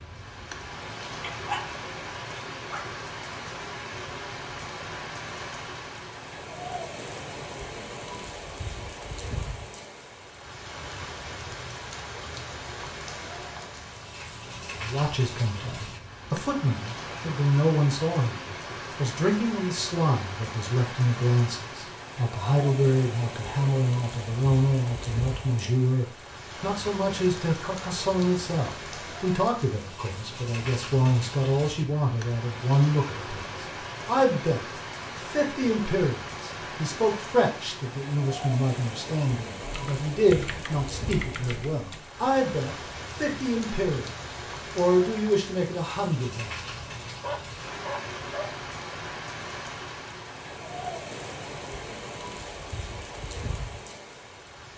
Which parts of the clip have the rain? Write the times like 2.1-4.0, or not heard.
0.0-54.7.